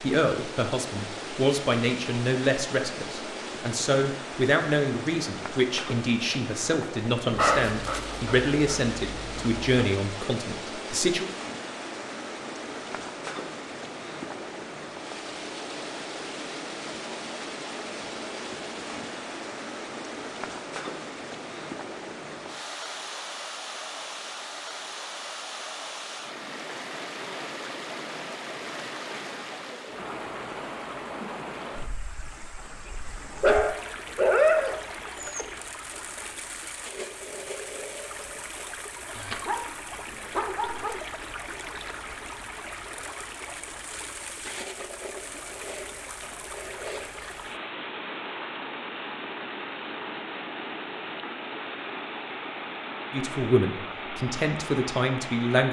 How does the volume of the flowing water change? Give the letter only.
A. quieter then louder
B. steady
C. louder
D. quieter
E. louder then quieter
B.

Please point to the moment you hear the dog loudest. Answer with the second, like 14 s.
34 s.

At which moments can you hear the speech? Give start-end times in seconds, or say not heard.
0.0-11.2, 53.1-55.6.